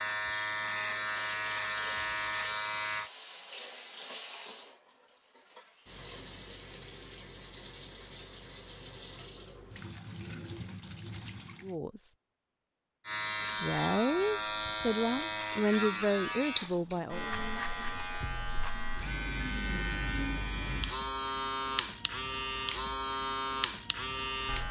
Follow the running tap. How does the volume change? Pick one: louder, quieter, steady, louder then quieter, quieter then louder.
steady.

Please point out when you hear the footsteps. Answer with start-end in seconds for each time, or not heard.
not heard.